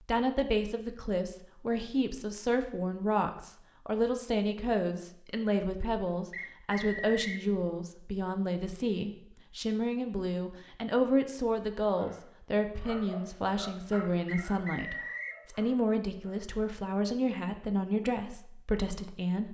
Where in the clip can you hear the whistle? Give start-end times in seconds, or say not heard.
6.3-7.5, 14.2-15.4.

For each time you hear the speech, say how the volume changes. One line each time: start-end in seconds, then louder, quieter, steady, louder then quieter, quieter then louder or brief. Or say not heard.
0.1-19.4 steady.